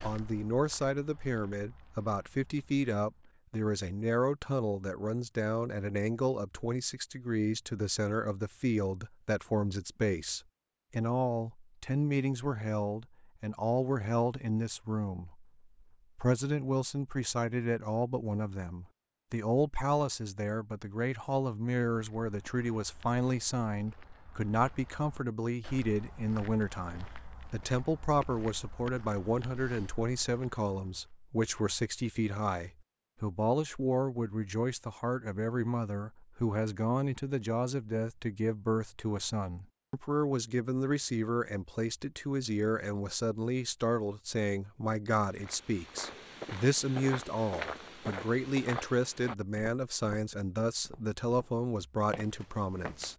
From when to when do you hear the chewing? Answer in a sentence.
You can't hear the chewing here.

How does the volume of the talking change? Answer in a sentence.
The loudness of the talking stays about the same.